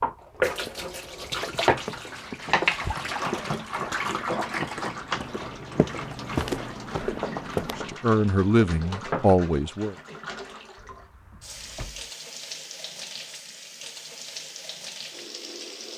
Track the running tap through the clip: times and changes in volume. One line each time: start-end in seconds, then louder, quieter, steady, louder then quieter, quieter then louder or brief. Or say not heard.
0.0-15.9 quieter.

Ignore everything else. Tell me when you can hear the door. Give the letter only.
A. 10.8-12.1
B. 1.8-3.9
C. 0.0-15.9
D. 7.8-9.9
A.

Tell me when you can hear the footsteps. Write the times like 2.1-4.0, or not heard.
1.6-8.1.